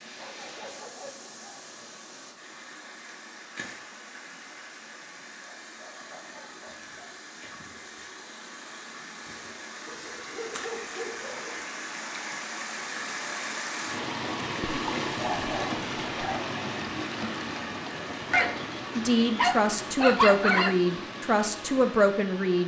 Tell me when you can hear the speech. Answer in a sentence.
You can hear the speech from 18.9 to 22.6 s.